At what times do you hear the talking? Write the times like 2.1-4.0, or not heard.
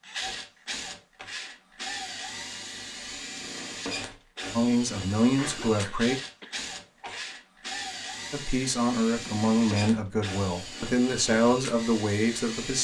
4.5-6.2, 8.3-12.7.